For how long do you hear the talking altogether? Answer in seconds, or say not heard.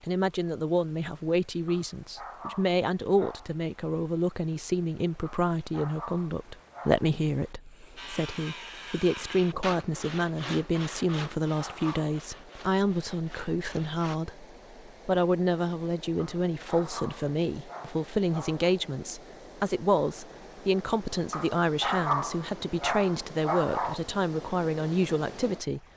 26 s.